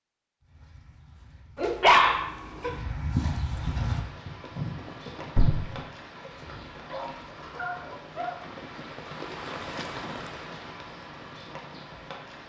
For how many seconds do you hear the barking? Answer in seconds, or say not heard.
3 s.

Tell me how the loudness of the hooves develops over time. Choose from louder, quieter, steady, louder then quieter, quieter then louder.
louder.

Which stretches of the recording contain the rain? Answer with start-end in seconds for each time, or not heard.
3.8-12.4.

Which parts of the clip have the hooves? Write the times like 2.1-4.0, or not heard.
0.4-5.8.